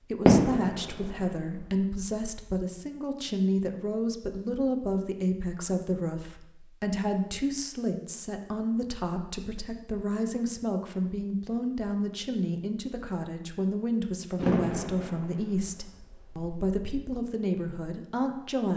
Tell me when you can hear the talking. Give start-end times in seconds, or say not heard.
0.0-18.7.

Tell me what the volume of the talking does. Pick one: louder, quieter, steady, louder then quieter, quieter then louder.
steady.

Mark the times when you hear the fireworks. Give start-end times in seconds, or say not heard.
0.1-1.8, 14.3-16.6.